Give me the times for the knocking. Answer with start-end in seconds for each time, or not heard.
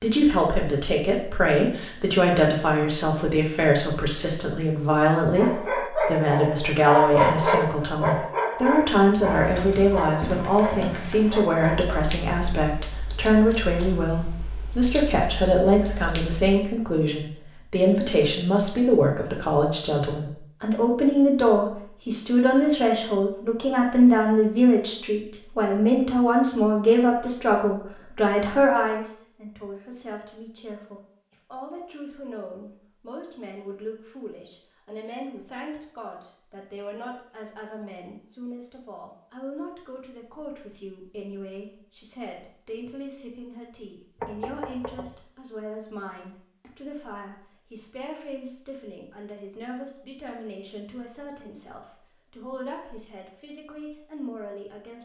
44.1-45.1.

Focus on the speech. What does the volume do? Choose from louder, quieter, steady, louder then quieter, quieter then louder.
quieter.